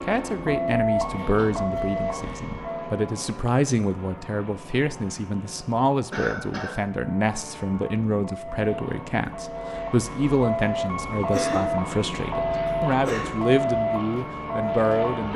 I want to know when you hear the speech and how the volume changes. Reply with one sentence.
The speech can be heard from 0.0 to 15.3 s, at a steady volume.